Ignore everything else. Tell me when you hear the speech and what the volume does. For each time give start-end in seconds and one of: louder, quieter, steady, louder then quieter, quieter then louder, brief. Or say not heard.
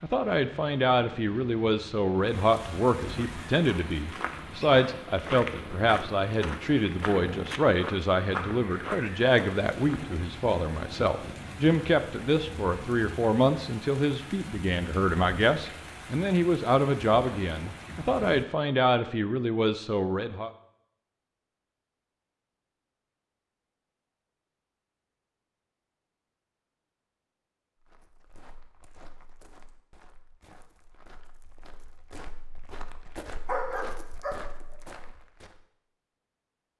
0.0-20.5 steady.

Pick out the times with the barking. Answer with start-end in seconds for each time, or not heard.
33.5-34.4.